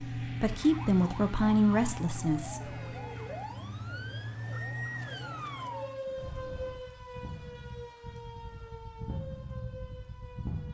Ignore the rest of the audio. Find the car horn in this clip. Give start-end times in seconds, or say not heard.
2.6-3.5, 6.2-6.8.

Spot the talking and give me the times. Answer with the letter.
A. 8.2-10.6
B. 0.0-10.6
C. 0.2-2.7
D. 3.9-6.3
C.